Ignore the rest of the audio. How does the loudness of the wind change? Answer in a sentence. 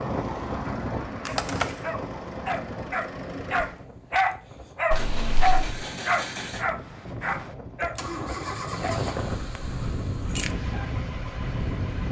The loudness of the wind goes down, then up.